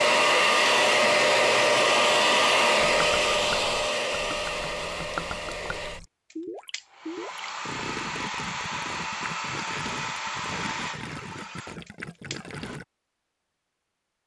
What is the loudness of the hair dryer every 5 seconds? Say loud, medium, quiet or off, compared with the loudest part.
loud, quiet, quiet.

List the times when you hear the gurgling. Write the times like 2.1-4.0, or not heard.
2.8-12.8.